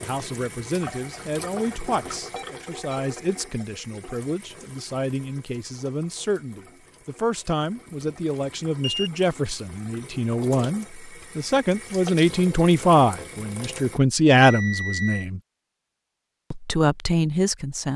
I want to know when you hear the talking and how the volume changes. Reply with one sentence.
You can hear the talking from 0.0 to 15.4 s, getting louder; and briefly from 16.5 to 17.9 s.